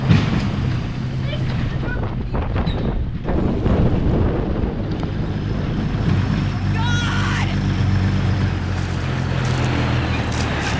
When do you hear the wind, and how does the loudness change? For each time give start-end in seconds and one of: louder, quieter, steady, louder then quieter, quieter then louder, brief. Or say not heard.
0.0-6.2 louder then quieter.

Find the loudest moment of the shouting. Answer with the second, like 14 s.
7 s.